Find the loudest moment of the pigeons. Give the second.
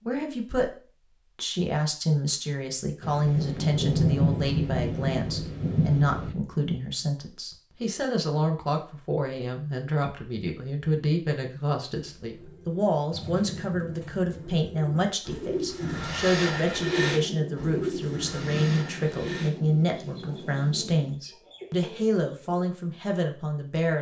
17 s.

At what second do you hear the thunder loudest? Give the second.
4 s.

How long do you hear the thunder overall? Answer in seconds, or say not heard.
7 s.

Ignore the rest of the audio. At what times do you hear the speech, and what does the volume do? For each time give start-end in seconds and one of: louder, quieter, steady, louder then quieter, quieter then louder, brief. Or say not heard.
0.1-0.7 brief
1.4-23.9 steady.